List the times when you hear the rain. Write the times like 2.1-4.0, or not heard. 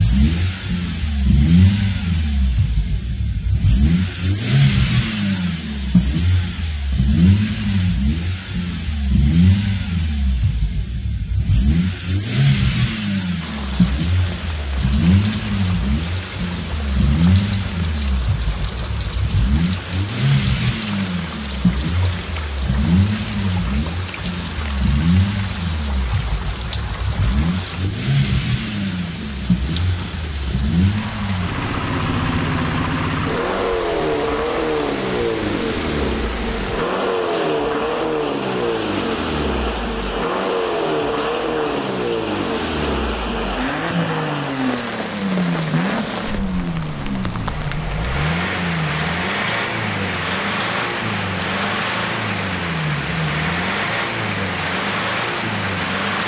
13.4-56.2.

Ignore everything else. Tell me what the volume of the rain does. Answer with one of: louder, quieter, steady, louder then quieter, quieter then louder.
louder.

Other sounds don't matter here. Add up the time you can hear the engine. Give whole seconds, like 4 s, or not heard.
56 s.